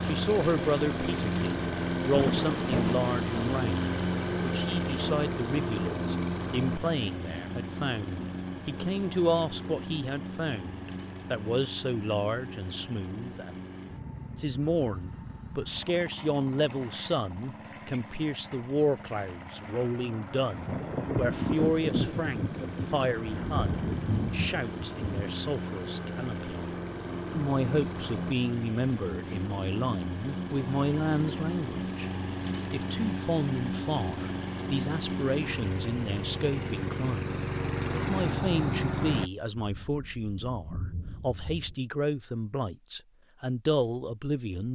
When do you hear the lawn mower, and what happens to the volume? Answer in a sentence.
You can hear the lawn mower from 0.0 to 39.3 s, getting quieter then louder.